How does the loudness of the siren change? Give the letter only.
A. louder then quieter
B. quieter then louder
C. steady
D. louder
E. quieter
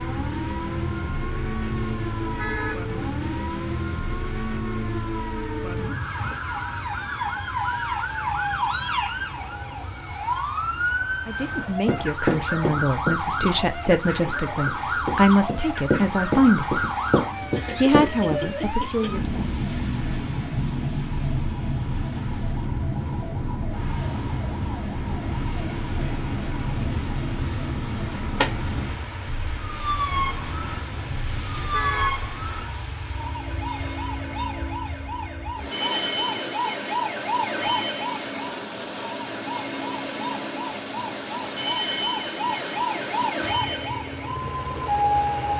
C.